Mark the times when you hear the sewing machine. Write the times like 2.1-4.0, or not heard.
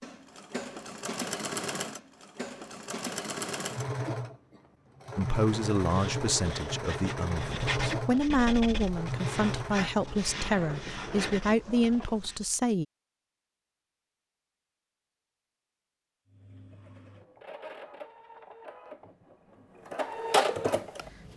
0.0-12.1, 16.2-21.3.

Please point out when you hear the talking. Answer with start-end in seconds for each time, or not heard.
5.2-12.8.